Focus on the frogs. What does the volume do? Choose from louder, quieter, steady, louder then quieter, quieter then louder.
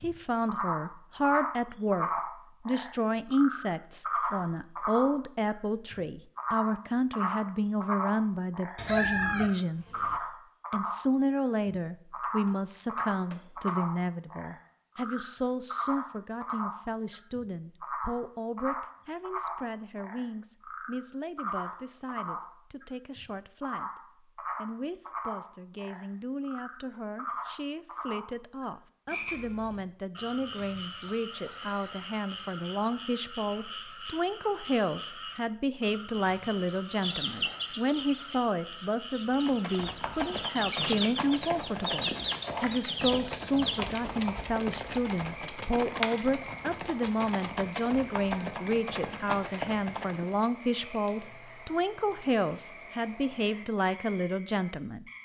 quieter.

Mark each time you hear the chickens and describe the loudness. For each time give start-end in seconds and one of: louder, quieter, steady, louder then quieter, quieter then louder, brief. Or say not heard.
8.8-10.2 brief
37.0-43.8 quieter then louder.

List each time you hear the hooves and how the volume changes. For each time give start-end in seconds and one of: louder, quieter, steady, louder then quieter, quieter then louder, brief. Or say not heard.
39.3-50.5 steady.